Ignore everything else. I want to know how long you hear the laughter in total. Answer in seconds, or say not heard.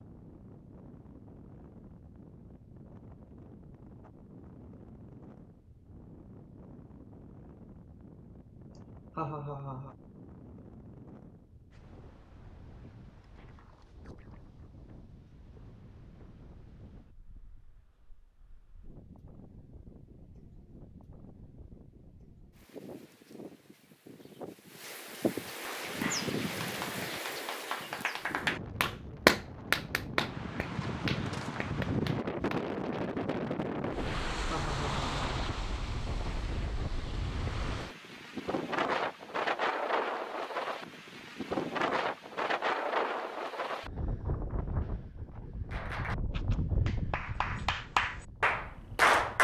2 s.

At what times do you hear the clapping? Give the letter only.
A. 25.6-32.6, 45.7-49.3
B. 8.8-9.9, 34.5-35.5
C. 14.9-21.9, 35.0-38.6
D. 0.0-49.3
A.